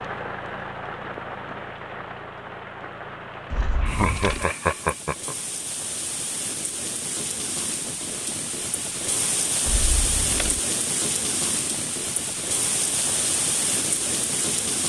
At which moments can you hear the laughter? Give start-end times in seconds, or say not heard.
3.8-5.3.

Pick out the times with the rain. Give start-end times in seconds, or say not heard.
0.0-14.8.